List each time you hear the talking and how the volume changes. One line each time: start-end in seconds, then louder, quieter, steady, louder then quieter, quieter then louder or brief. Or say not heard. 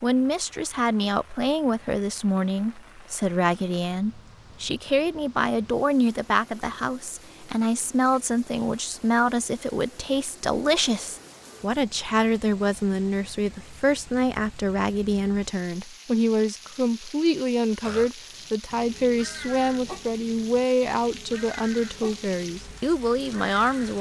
0.0-23.9 steady.